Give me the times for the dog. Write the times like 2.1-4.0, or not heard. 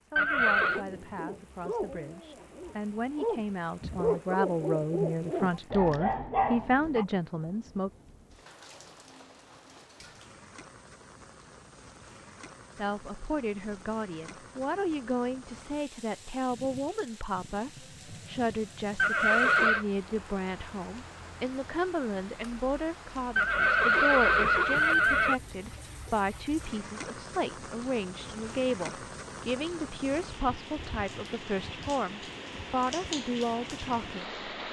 0.6-7.0.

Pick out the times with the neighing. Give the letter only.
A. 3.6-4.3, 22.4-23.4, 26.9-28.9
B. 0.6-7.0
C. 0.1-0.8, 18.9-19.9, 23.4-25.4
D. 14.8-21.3
C.